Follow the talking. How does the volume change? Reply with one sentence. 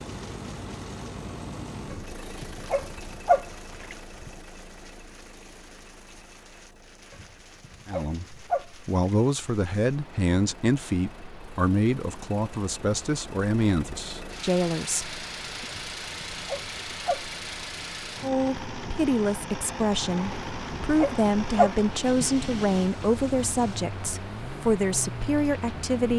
The volume of the talking stays about the same.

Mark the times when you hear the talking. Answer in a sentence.
You can hear the talking from 7.8 to 15.7 s and from 18.2 to 26.1 s.